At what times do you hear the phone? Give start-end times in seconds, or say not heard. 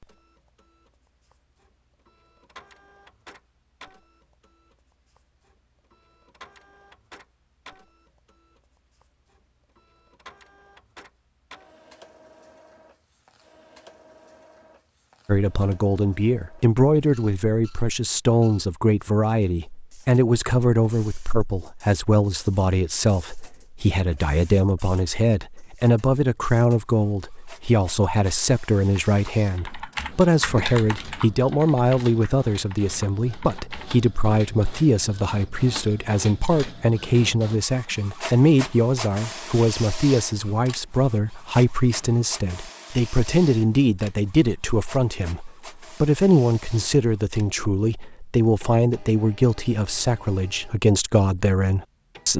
not heard.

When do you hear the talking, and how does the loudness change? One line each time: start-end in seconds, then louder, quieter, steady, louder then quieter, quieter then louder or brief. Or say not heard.
15.2-52.3 steady.